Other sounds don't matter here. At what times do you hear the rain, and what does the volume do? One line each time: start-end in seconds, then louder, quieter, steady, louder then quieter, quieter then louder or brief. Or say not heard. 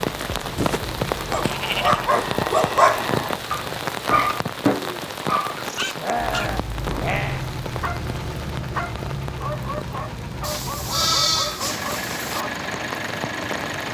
0.0-13.9 quieter.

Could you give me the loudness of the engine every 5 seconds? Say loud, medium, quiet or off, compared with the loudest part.
medium, loud, loud.